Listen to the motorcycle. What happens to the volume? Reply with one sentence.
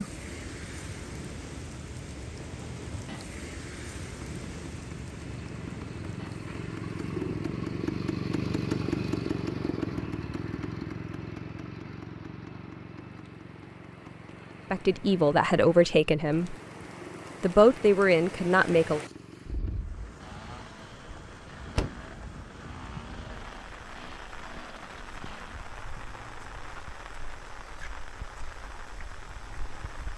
The volume of the motorcycle goes up, then down.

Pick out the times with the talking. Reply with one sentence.
You can hear the talking from 14.7 to 16.6 s and from 17.4 to 19.0 s.